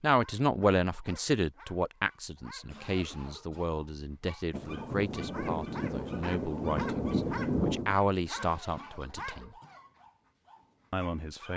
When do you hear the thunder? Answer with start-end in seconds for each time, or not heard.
4.5-8.0.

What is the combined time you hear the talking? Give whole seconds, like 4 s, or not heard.
10 s.